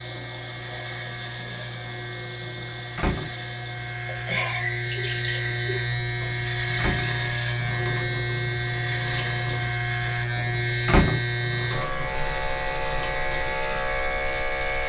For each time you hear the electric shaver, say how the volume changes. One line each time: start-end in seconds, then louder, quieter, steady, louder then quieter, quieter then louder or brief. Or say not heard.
0.0-14.8 louder.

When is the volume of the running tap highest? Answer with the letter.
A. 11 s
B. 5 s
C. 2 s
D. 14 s
B.